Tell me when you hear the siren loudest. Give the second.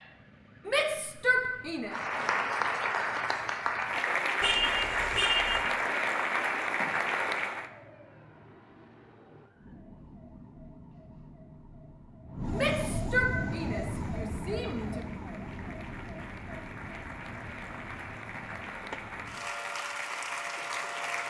13 s.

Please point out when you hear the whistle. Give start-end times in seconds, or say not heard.
not heard.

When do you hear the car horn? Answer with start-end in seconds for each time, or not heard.
4.4-5.7.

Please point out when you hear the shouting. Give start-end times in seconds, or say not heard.
0.7-1.9, 12.5-15.1.